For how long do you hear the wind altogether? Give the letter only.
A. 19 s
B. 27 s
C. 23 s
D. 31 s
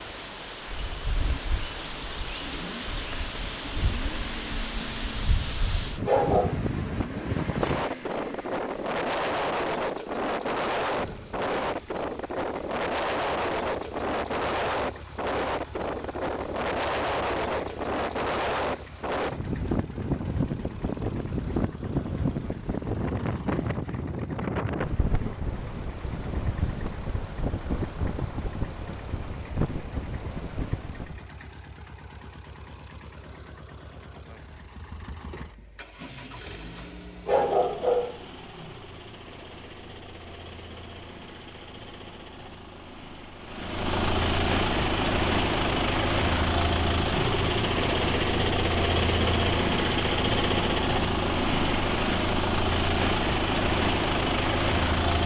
D.